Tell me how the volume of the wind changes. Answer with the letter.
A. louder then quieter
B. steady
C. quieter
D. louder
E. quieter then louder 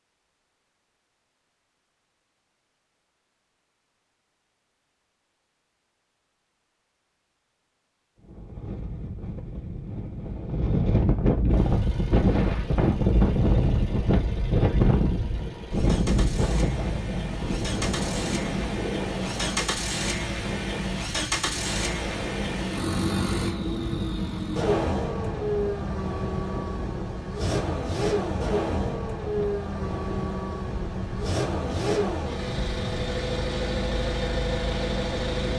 C.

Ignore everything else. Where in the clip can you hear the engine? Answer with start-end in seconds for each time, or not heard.
11.5-35.5.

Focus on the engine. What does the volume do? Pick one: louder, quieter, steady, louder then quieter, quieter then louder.
louder.